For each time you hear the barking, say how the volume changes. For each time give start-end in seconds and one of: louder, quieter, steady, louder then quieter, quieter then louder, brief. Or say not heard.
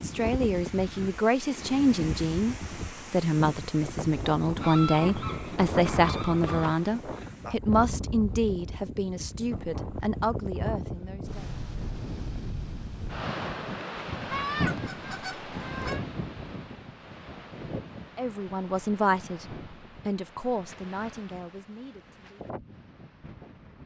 not heard.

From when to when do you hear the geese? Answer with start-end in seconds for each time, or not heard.
4.6-7.0, 14.2-16.1.